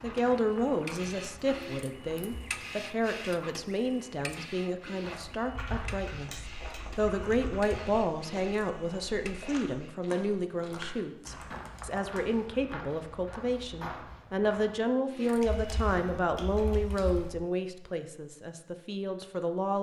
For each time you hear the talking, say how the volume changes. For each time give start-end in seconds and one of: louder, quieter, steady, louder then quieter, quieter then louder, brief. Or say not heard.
0.0-19.7 steady.